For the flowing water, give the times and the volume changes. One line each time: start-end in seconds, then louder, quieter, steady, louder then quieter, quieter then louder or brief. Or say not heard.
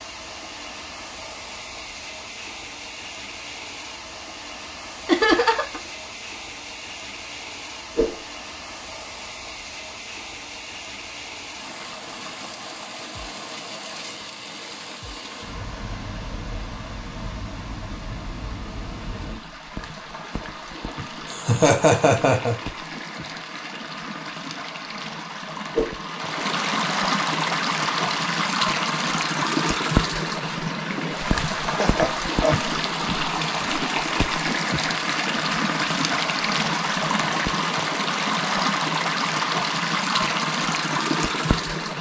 0.0-41.9 louder.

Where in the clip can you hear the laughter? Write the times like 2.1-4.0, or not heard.
5.0-5.8, 21.2-22.6, 31.7-32.7.